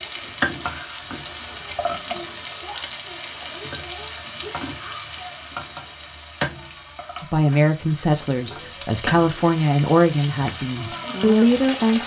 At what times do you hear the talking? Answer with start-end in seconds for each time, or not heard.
7.2-12.0.